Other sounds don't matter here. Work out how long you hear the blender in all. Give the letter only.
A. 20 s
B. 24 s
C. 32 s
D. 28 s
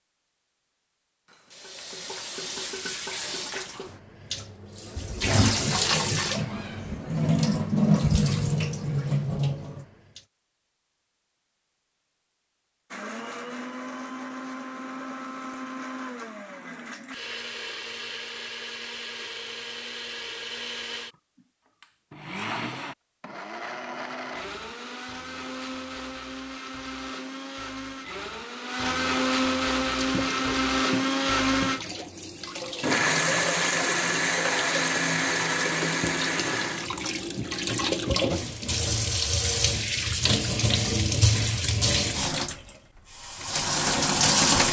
B.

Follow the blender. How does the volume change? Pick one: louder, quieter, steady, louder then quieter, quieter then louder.
louder.